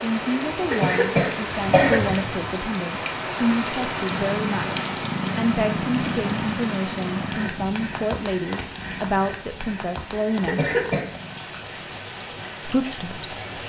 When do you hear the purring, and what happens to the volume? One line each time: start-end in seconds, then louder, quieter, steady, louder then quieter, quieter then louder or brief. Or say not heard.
4.0-11.4 quieter.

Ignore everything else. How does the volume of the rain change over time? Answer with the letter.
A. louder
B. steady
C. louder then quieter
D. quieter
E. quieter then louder
D.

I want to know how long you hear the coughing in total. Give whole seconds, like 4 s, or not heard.
2 s.